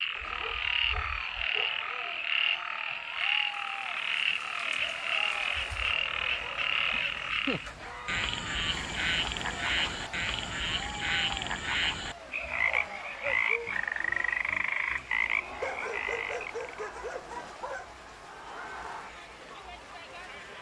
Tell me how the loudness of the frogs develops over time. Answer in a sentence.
The volume of the frogs stays about the same.